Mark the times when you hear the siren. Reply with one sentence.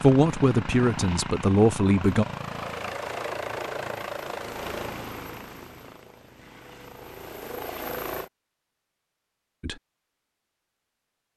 You can't hear the siren here.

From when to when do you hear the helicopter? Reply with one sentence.
You can hear the helicopter from 0.0 to 8.3 s.